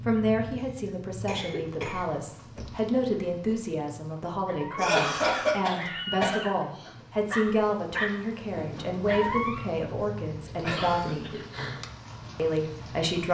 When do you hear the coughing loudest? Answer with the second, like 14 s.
5 s.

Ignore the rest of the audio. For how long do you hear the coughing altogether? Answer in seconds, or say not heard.
4 s.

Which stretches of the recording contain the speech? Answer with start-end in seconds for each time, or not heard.
0.1-11.3, 12.3-13.2.